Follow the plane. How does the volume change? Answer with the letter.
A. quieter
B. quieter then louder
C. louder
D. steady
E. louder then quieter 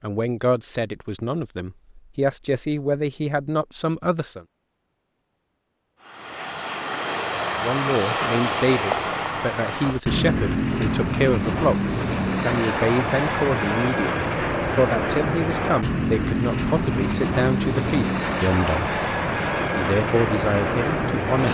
D.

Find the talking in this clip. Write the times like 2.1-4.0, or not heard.
0.0-4.5, 7.6-18.9, 19.8-21.4.